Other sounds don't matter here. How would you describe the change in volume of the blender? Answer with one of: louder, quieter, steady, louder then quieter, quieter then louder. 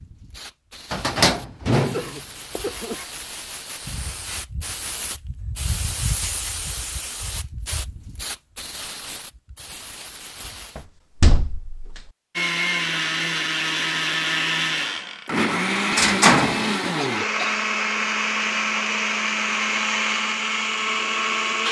steady.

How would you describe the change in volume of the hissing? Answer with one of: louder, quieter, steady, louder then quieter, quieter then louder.
louder then quieter.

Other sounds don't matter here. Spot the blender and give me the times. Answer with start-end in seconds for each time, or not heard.
12.3-21.6.